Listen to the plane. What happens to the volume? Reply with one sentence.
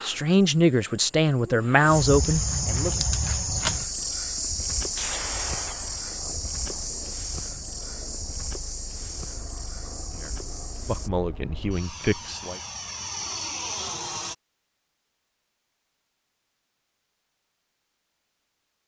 The volume of the plane goes up.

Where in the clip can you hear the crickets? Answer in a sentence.
You can hear the crickets from 0.0 to 11.1 s.